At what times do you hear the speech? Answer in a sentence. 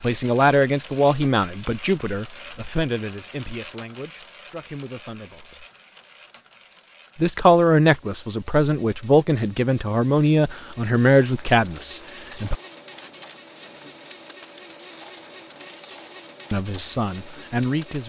You can hear the speech from 0.0 to 5.7 s, from 7.2 to 12.6 s and from 16.5 to 18.0 s.